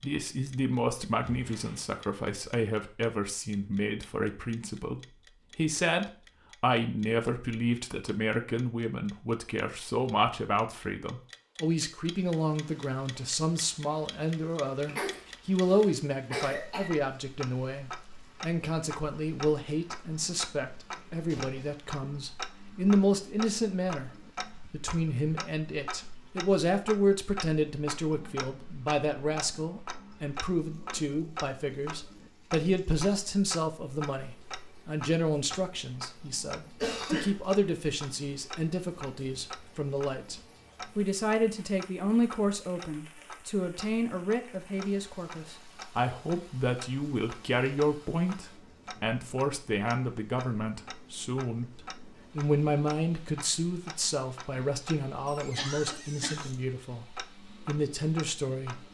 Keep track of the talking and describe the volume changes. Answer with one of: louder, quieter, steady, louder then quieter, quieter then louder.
steady.